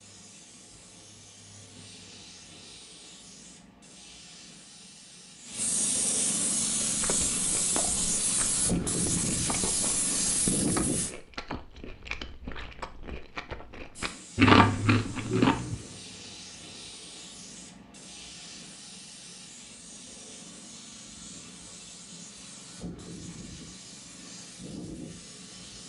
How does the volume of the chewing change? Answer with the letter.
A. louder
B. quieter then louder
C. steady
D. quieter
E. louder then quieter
A.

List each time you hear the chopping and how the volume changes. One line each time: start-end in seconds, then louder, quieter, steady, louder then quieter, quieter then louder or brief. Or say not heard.
not heard.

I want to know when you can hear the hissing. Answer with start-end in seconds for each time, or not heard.
0.0-11.2, 13.9-25.8.